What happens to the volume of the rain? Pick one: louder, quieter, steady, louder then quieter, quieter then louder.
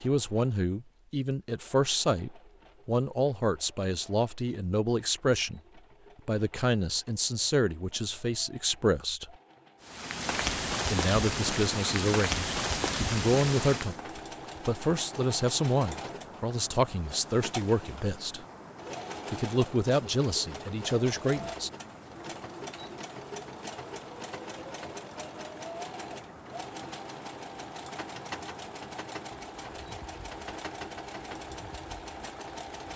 quieter.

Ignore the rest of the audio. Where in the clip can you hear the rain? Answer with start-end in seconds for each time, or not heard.
9.8-32.9.